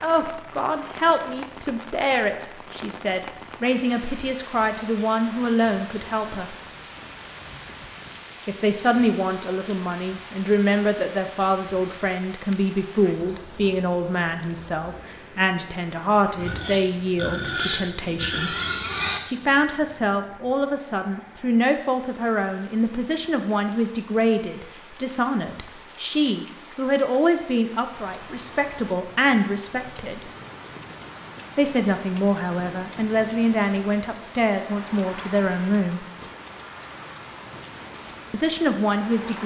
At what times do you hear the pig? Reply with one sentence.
The pig can be heard from 16.4 to 19.2 s.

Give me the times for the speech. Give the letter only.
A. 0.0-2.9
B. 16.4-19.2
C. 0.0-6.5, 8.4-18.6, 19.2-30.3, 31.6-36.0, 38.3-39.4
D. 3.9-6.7
C.